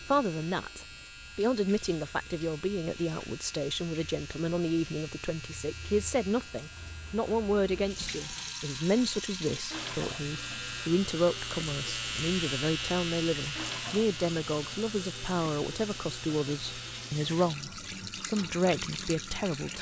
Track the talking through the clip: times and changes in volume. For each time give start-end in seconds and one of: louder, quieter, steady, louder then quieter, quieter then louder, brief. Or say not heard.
0.0-19.7 steady.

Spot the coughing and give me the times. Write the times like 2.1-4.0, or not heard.
not heard.